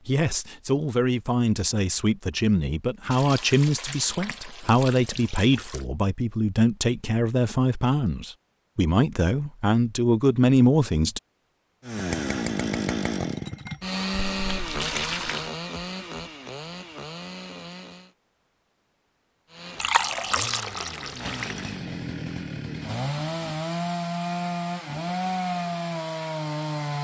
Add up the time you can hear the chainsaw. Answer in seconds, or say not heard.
14 s.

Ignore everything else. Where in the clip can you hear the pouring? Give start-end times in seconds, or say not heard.
3.1-5.8, 14.1-15.5, 19.8-21.7.